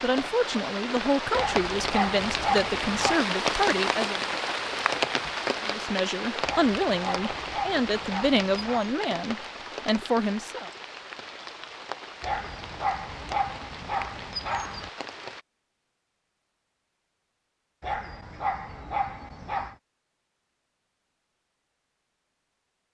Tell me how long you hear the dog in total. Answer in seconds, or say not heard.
9 s.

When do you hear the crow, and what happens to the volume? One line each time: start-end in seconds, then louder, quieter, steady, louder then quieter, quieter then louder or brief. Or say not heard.
not heard.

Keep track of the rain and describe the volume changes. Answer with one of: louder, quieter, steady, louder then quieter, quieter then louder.
quieter.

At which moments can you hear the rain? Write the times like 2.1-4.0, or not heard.
0.0-15.4.